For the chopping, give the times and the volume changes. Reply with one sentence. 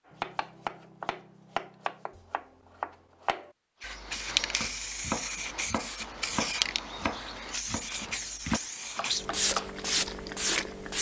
You can hear the chopping from 0.1 to 9.8 s, at a steady volume.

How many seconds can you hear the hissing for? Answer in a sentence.
You can hear the hissing for 7 seconds altogether.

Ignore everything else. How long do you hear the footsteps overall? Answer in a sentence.
You can't hear the footsteps here.